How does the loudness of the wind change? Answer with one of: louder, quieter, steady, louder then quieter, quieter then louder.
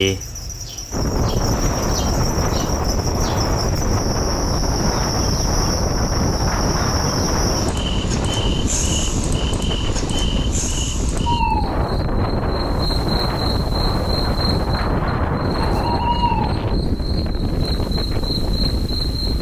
steady.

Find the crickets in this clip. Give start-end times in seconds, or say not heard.
0.0-19.3.